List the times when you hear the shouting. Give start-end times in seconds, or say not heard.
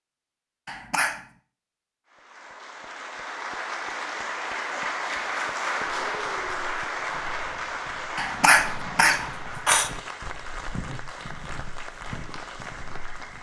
not heard.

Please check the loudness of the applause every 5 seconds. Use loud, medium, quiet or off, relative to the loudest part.
loud, loud, medium.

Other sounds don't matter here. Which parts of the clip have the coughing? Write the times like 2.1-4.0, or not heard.
0.7-1.2, 8.2-9.9.